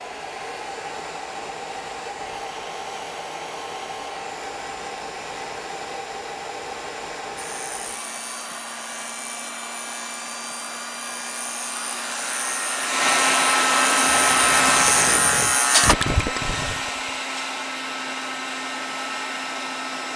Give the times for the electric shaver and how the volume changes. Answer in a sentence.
You can hear the electric shaver from 7.3 to 15.9 s, getting louder.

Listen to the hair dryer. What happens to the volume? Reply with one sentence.
The loudness of the hair dryer goes up, then down.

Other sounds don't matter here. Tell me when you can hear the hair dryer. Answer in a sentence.
You can hear the hair dryer from 0.0 to 20.1 s.